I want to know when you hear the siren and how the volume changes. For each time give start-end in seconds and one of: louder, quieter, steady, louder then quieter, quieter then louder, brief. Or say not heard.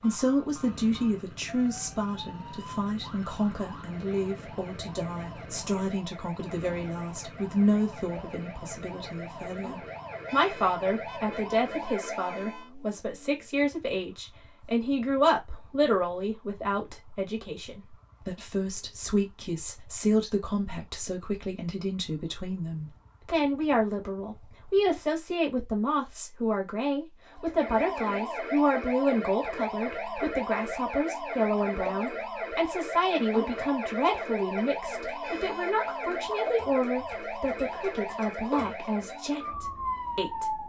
0.0-12.7 louder
27.3-40.6 steady.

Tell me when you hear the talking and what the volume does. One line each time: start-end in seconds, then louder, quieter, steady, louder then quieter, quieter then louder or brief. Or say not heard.
0.0-40.6 steady.